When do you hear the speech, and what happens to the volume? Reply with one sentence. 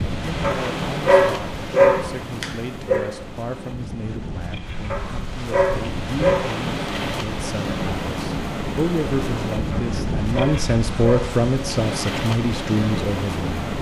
The speech can be heard from 0.1 to 13.4 s, getting louder.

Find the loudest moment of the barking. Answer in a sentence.
The volume of the barking peaks at 2 seconds.